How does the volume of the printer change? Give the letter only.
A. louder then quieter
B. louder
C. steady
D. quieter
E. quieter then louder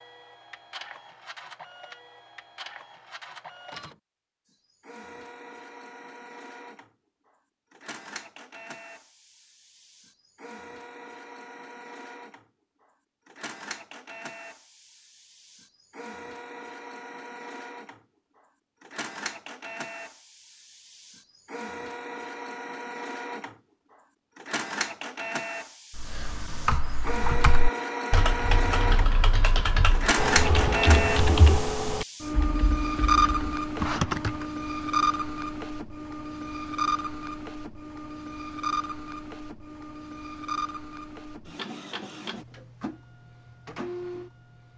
A.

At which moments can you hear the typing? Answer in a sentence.
You can hear the typing from 25.9 to 34.5 s.